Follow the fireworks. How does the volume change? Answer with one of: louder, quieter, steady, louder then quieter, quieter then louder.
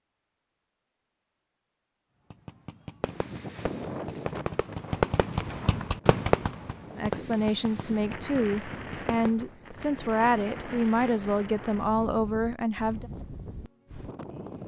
louder then quieter.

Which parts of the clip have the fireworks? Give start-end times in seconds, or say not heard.
2.3-9.8.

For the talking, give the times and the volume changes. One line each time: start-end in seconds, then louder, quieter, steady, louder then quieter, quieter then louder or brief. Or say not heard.
7.0-13.1 steady.